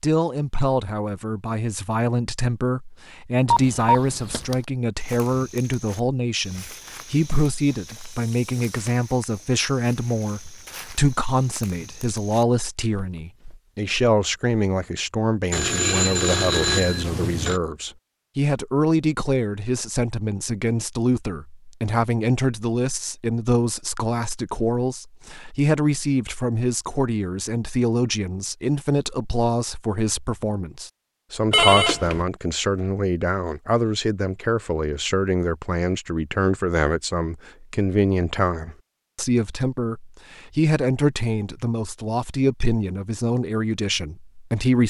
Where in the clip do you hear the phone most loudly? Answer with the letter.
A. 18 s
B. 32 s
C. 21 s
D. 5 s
B.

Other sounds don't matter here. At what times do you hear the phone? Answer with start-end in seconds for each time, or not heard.
3.5-4.5, 15.5-17.6, 31.5-32.2.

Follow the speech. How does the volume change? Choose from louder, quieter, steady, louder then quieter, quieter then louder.
steady.